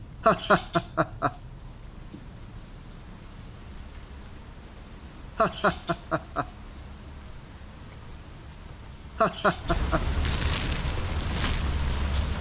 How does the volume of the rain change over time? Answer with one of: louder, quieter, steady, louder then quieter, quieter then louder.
louder.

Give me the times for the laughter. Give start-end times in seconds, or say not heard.
0.2-1.3, 5.3-6.5, 9.2-10.0.